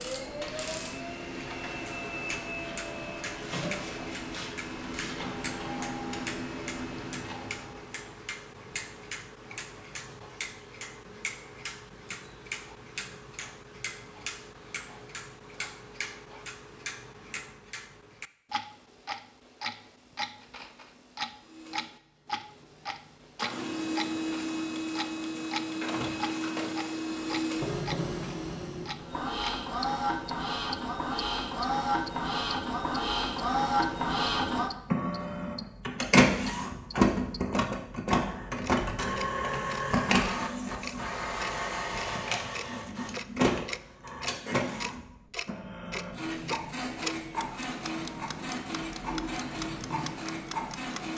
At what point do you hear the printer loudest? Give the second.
37 s.